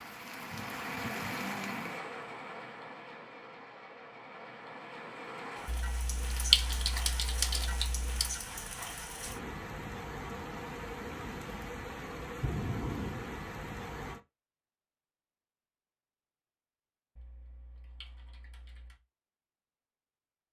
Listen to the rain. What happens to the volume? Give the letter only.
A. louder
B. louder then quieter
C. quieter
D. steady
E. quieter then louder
E.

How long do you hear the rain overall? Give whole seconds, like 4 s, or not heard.
14 s.